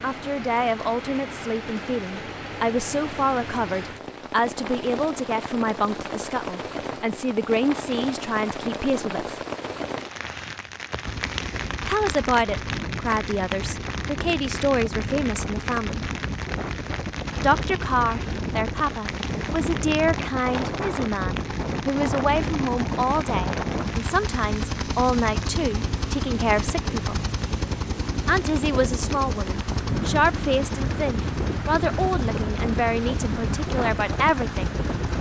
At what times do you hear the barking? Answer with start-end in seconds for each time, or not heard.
not heard.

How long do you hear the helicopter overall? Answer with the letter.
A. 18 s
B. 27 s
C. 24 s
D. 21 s
C.